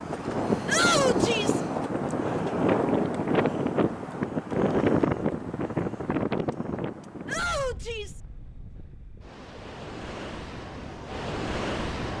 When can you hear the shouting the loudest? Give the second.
1 s.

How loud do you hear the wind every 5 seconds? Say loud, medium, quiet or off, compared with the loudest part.
loud, medium, medium.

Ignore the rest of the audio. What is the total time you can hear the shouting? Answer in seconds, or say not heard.
2 s.